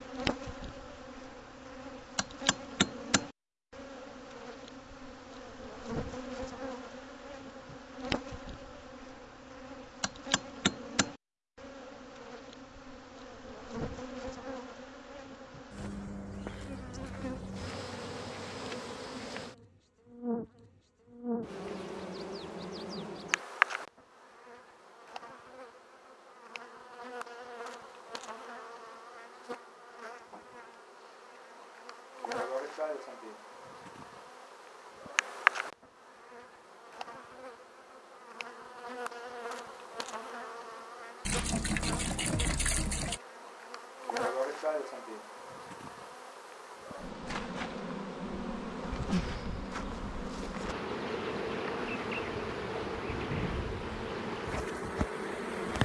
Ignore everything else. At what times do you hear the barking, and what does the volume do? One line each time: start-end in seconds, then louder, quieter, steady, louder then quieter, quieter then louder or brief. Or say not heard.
not heard.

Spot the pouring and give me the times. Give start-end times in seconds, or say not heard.
41.2-43.2.